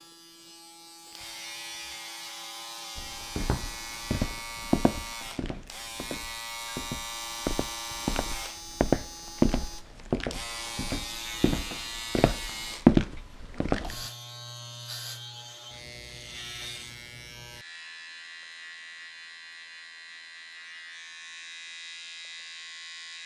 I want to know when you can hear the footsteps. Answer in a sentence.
You can hear the footsteps from 3.0 to 14.1 s.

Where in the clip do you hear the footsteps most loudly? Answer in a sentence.
The volume of the footsteps peaks at 13 seconds.